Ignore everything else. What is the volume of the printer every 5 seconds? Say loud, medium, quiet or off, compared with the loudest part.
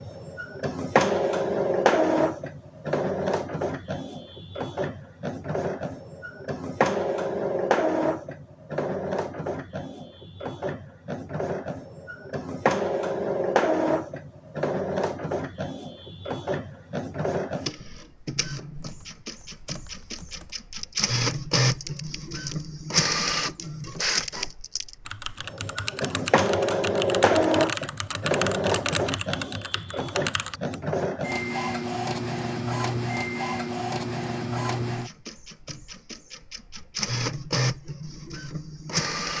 loud, loud, loud, medium, loud, loud, loud, medium.